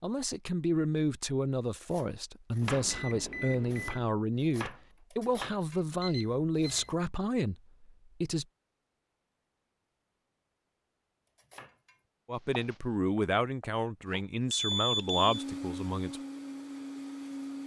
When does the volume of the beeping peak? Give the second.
15 s.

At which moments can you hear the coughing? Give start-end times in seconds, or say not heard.
not heard.